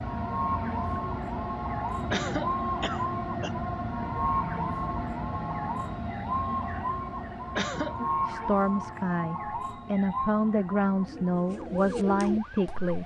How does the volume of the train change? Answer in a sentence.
The loudness of the train goes down.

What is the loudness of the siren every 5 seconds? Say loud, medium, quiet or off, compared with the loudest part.
loud, loud, medium.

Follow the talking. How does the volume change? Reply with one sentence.
The volume of the talking stays about the same.